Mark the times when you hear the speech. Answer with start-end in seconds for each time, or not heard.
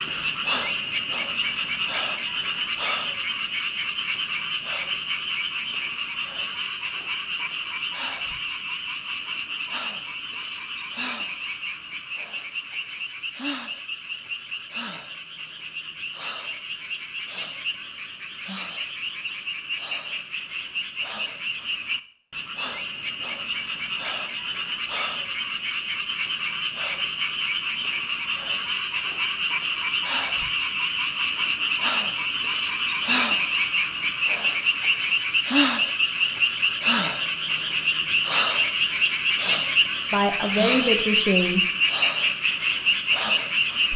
40.1-41.6.